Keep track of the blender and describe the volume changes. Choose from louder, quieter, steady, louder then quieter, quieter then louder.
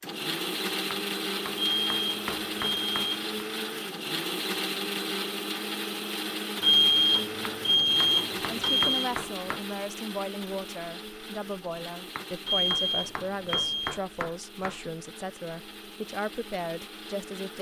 quieter.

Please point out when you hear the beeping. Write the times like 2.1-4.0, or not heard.
1.6-3.2, 6.6-9.1, 12.4-14.0.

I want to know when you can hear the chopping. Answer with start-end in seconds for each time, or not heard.
0.9-3.5, 7.5-9.7, 12.2-14.8.